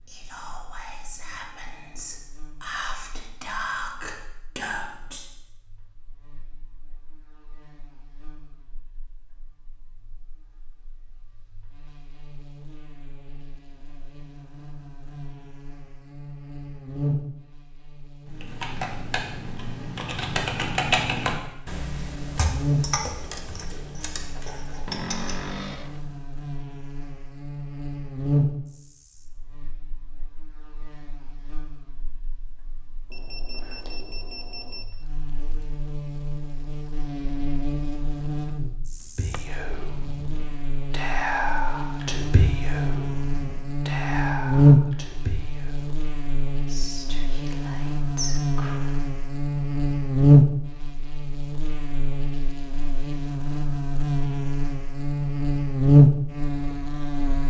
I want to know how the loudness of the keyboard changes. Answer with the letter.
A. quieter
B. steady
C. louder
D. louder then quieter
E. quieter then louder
D.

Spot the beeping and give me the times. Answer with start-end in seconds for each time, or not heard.
33.1-34.9.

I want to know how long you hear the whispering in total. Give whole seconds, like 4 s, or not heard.
15 s.